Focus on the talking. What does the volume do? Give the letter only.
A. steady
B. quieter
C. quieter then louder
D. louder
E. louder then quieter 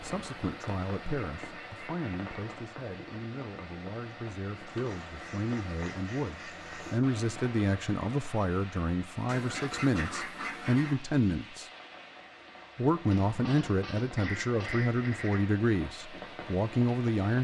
D.